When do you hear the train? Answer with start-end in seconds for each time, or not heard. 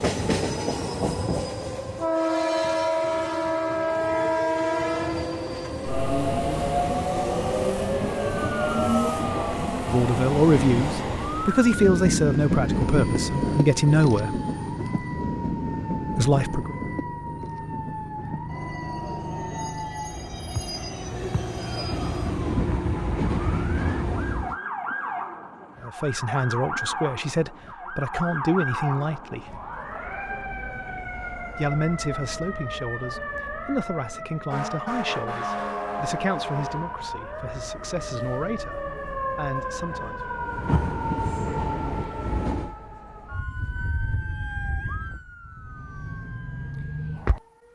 0.0-24.6, 40.5-42.8.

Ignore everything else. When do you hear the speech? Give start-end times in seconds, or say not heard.
9.3-14.4, 16.1-16.8, 25.8-29.6, 31.5-40.3.